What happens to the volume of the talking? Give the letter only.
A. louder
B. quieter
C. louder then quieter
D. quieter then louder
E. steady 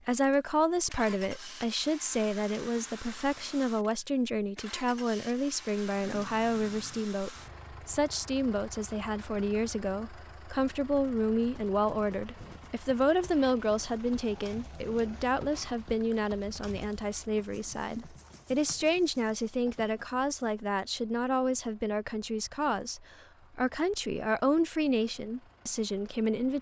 E.